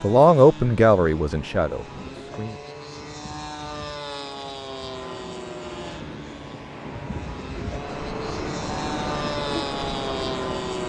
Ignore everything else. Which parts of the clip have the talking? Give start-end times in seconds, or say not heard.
0.0-2.6.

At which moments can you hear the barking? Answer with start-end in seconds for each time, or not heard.
not heard.